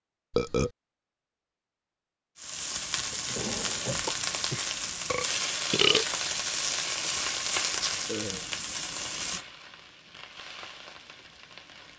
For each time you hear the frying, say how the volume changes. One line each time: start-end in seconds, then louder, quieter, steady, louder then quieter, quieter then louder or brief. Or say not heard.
2.4-11.9 quieter.